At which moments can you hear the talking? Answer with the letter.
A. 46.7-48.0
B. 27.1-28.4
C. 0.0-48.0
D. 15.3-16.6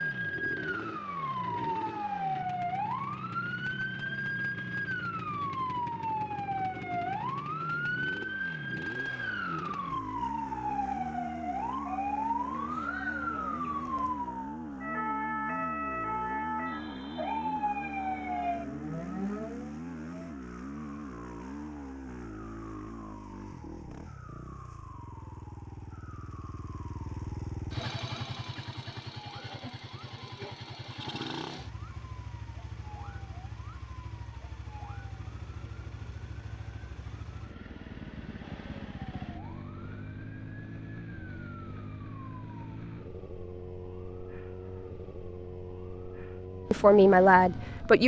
A.